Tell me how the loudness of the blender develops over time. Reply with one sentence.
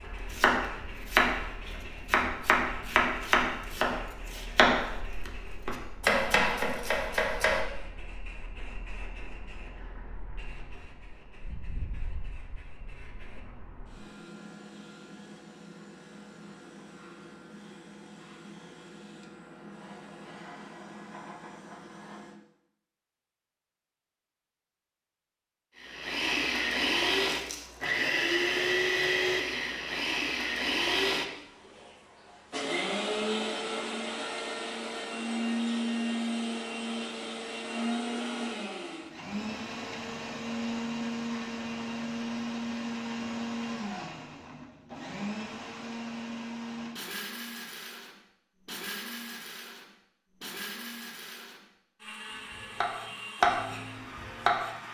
The loudness of the blender goes down.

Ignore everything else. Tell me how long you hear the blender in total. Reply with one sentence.
The blender can be heard for 29 seconds in total.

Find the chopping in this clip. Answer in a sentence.
The chopping can be heard from 0.3 to 7.6 s and from 52.5 to 54.8 s.